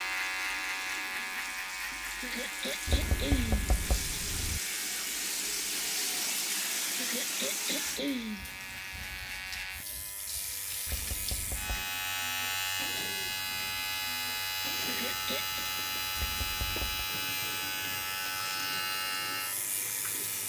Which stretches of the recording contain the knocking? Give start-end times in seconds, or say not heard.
2.9-4.6, 10.8-11.8, 16.1-17.1.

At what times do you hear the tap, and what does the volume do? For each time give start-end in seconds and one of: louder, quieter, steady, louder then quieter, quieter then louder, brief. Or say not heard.
0.0-20.4 louder then quieter.